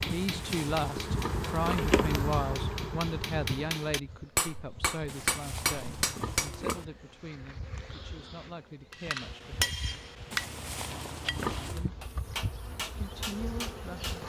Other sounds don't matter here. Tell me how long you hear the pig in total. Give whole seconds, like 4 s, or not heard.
5 s.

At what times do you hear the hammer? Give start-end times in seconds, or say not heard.
0.0-6.8, 8.9-14.2.